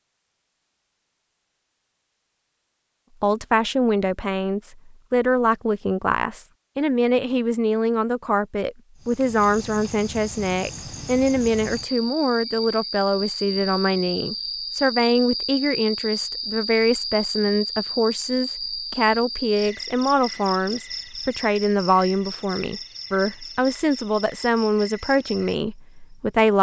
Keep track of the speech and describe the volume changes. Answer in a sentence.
The volume of the speech stays about the same.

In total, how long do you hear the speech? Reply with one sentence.
The speech can be heard for 23 seconds in total.